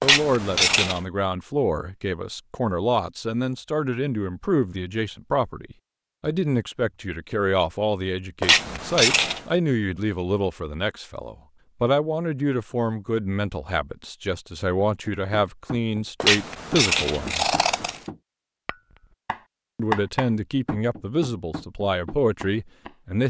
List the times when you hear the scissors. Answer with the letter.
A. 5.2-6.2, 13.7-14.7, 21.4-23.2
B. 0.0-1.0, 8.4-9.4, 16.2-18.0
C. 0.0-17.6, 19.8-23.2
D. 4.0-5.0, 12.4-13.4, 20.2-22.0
B.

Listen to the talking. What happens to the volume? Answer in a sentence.
The loudness of the talking stays about the same.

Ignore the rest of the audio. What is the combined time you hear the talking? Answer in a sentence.
The talking can be heard for 21 seconds in total.